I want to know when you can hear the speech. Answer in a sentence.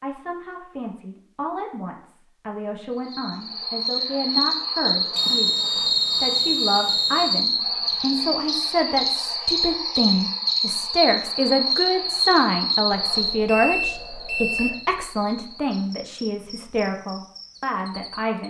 You can hear the speech from 0.0 to 5.5 s and from 6.2 to 18.4 s.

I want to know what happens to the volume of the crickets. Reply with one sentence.
The volume of the crickets goes down.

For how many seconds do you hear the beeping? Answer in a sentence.
You can hear the beeping for 4 seconds altogether.